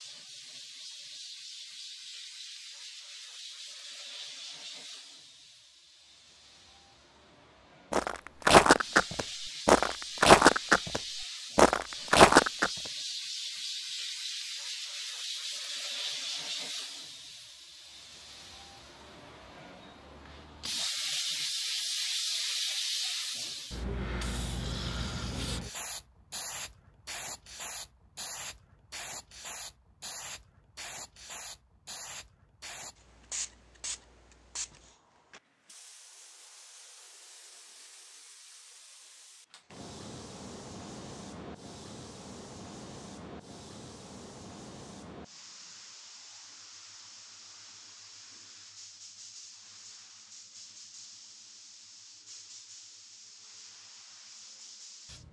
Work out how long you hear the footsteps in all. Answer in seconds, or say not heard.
5 s.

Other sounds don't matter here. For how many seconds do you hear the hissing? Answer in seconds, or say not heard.
55 s.